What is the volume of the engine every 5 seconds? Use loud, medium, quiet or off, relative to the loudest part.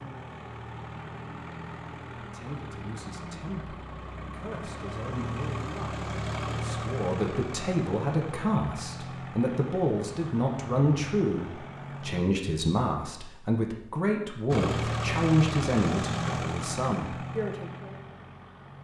medium, loud, loud, loud.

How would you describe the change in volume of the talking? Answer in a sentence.
The loudness of the talking goes up.